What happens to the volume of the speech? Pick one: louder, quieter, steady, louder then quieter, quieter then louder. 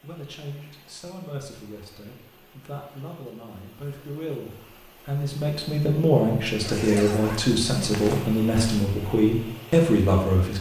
louder.